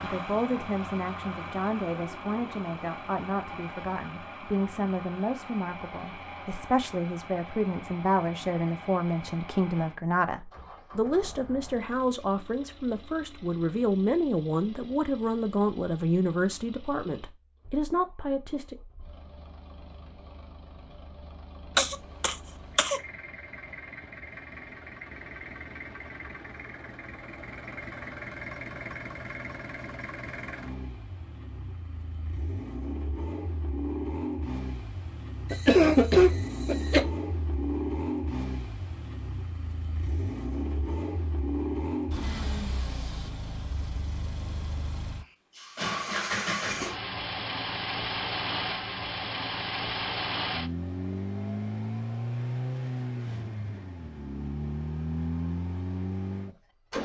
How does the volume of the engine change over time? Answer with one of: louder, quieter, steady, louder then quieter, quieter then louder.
quieter then louder.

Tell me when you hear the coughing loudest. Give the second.
36 s.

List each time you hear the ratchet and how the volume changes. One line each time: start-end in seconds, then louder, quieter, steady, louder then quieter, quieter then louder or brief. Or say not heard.
not heard.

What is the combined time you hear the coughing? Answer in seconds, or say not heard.
3 s.